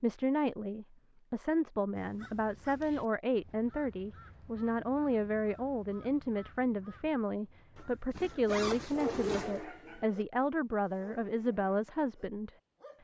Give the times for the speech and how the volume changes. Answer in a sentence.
You can hear the speech from 0.0 to 12.5 s, at a steady volume.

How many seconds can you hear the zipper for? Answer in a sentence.
The zipper can be heard for 2 seconds in total.